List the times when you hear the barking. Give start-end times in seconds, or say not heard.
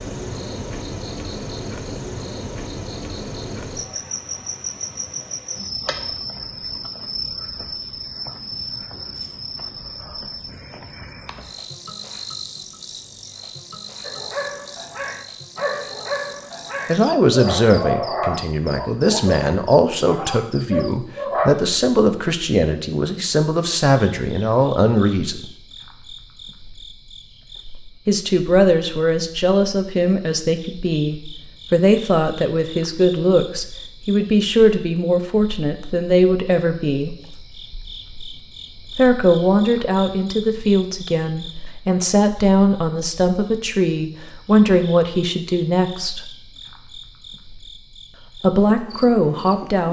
14.0-21.6.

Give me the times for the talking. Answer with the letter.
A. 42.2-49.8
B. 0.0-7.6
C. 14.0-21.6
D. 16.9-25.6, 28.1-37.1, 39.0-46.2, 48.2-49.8
D.